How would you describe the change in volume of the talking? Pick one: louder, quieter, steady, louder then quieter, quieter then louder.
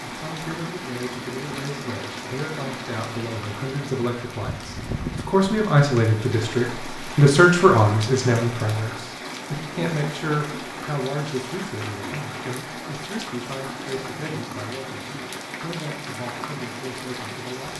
louder then quieter.